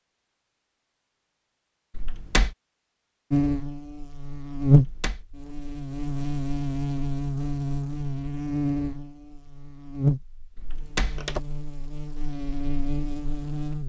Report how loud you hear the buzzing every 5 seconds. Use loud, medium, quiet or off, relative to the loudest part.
loud, medium, medium.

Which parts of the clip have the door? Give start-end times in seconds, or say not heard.
1.9-2.5, 4.6-5.2, 10.6-11.4.